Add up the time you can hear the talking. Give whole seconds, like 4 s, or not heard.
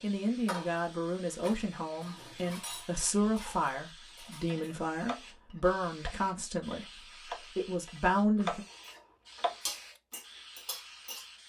9 s.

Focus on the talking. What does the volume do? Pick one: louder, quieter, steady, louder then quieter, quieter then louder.
steady.